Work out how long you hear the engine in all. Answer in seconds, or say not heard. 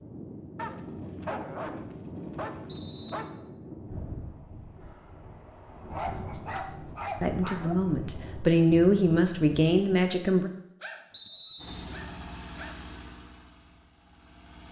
3 s.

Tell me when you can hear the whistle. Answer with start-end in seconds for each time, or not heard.
2.6-3.3, 11.1-12.0.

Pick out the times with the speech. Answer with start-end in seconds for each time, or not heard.
7.2-10.5.